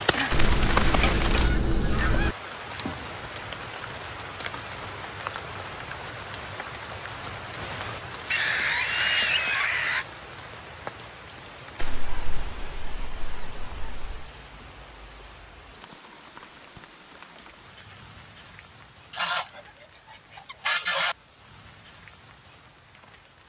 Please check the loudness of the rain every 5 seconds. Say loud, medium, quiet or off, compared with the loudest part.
loud, medium, medium, quiet, quiet.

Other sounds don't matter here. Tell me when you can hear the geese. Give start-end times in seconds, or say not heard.
0.3-2.4, 8.3-10.1, 11.8-14.2, 19.1-19.6, 20.4-21.1.